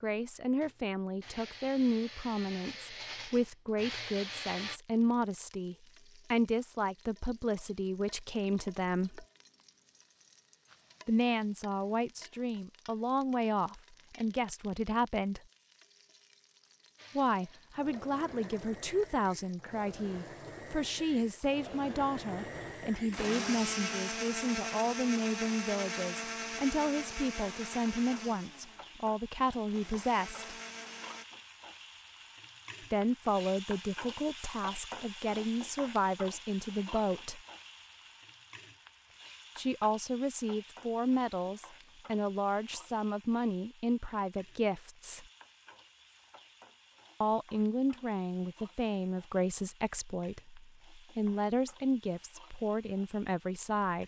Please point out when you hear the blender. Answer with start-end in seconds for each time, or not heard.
0.0-4.8, 16.9-31.2.